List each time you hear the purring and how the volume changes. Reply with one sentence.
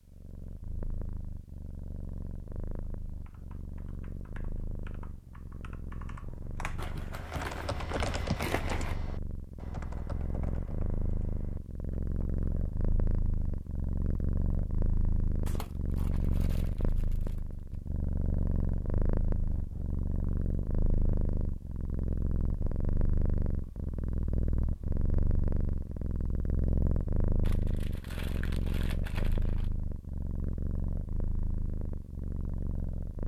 You can hear the purring from 0.0 to 33.2 s, getting louder.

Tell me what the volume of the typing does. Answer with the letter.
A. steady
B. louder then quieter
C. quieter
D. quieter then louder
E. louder
B.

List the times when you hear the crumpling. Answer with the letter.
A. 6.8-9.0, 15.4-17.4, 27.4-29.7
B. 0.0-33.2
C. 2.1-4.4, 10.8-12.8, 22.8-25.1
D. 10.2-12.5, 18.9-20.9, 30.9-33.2
A.